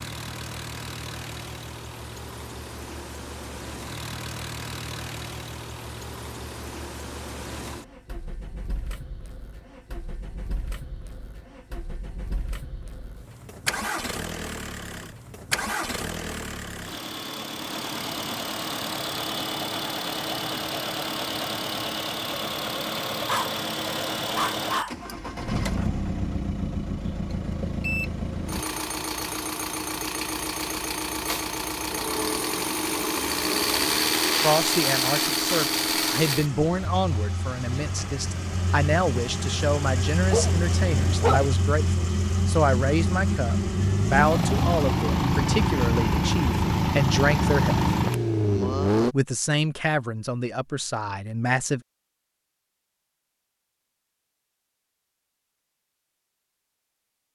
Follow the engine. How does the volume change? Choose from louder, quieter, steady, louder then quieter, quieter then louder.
louder.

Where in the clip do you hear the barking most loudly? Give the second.
41 s.